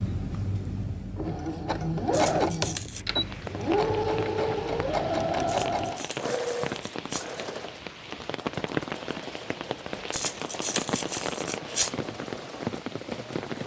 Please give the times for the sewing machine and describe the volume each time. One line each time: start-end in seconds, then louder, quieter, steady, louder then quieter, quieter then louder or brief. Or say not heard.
0.0-13.6 quieter.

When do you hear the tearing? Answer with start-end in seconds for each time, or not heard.
2.1-3.0, 5.5-7.2, 10.1-11.9.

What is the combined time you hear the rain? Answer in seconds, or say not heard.
11 s.